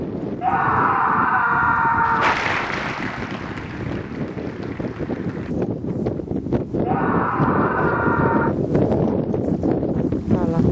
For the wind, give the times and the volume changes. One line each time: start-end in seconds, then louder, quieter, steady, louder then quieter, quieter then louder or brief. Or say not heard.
0.0-10.6 louder.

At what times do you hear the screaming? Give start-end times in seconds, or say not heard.
0.4-2.4, 6.8-8.6.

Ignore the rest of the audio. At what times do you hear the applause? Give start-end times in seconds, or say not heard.
2.0-5.5.